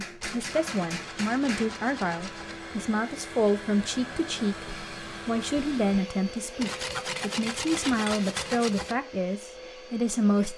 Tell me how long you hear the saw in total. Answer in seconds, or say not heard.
5 s.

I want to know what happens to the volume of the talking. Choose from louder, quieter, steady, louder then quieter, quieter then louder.
steady.